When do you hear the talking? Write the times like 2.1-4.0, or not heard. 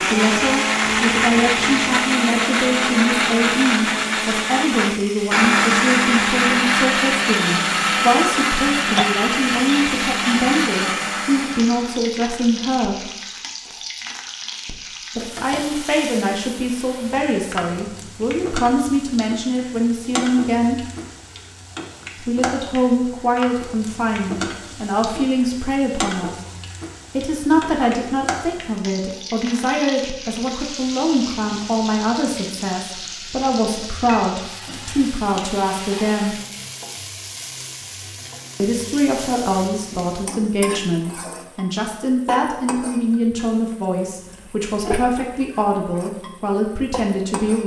0.0-13.1, 15.2-20.9, 22.2-26.4, 27.1-36.4, 38.5-47.6.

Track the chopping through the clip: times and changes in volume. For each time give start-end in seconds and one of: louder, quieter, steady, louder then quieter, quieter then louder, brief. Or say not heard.
not heard.